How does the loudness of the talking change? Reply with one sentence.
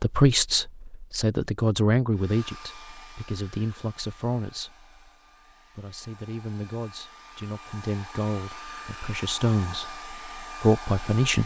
The loudness of the talking goes down, then up.